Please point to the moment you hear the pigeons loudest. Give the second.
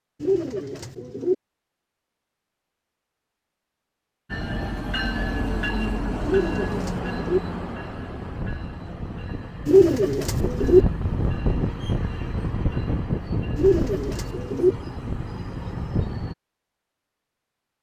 10 s.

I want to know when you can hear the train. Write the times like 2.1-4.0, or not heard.
4.3-16.4.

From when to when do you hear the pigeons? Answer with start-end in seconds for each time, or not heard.
0.2-1.4, 6.2-7.4, 9.7-10.8, 13.6-14.8.